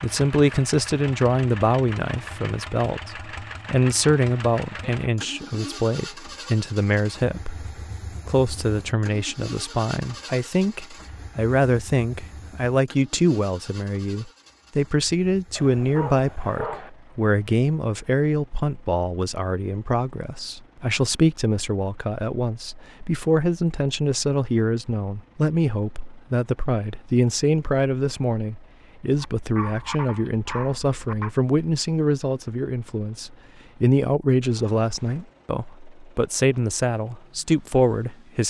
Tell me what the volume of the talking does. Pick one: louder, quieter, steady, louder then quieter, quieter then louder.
steady.